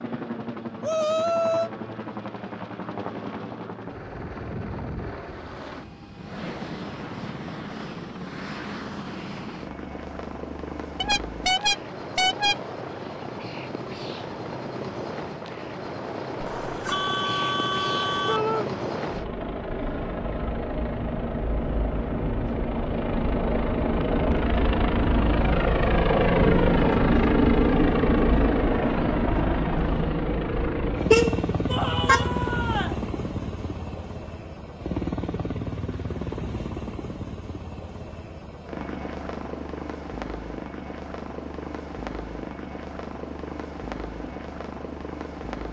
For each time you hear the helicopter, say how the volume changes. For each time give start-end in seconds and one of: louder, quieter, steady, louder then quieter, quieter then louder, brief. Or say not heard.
0.0-45.6 louder then quieter.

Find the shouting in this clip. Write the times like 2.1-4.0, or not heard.
0.8-1.7, 18.2-18.7, 31.6-33.0.